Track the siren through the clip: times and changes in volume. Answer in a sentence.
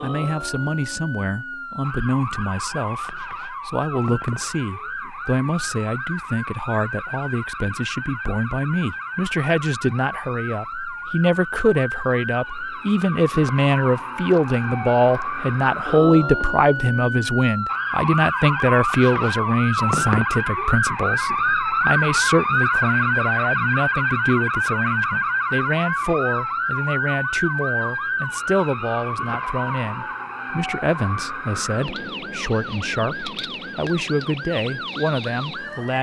You can hear the siren from 0.0 to 35.9 s, getting louder then quieter.